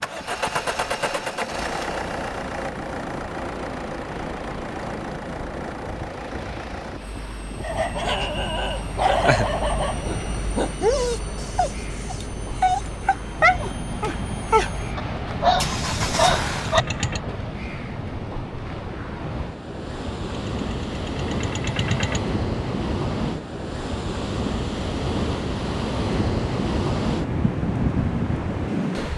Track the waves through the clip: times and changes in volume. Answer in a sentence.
You can hear the waves from 0.0 to 29.1 s, getting louder.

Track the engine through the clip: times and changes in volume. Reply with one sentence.
The engine can be heard from 0.0 to 17.2 s, getting quieter then louder; and briefly from 20.2 to 22.2 s.